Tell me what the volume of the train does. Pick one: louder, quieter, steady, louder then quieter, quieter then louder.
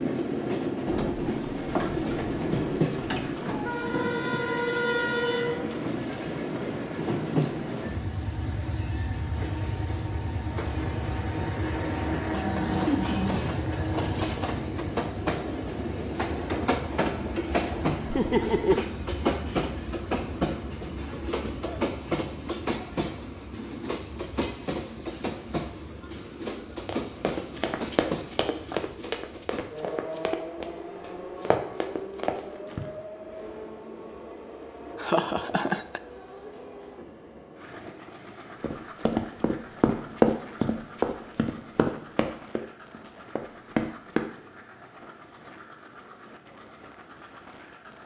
quieter.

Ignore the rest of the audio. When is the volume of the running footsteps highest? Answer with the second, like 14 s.
40 s.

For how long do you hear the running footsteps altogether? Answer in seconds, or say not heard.
12 s.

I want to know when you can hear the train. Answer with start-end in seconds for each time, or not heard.
0.0-48.0.